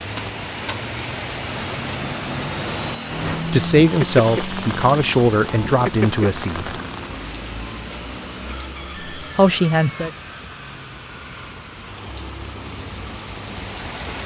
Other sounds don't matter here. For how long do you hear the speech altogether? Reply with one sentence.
The speech can be heard for 4 seconds in total.